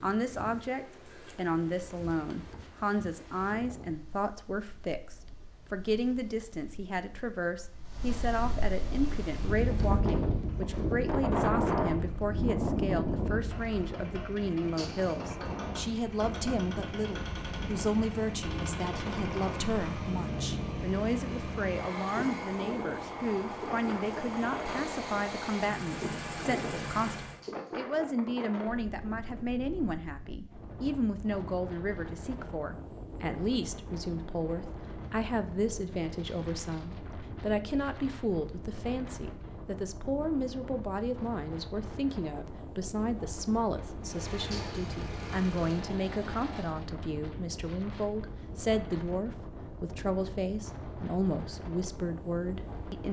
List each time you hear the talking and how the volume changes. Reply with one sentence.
You can hear the talking from 0.0 to 53.0 s, at a steady volume.